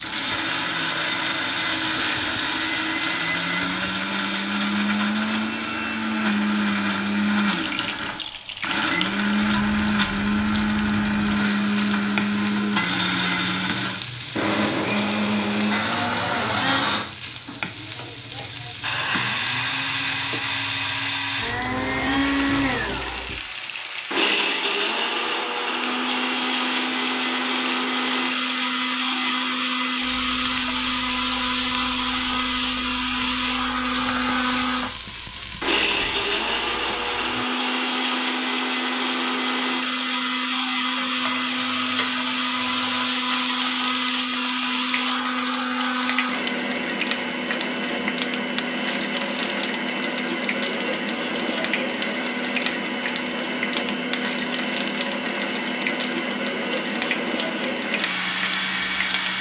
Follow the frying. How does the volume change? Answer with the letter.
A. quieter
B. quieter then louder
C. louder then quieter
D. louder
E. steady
E.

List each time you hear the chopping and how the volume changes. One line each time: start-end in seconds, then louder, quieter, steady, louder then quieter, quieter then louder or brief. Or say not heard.
not heard.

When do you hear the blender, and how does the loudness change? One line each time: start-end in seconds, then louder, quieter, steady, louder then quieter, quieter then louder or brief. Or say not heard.
0.0-59.3 steady.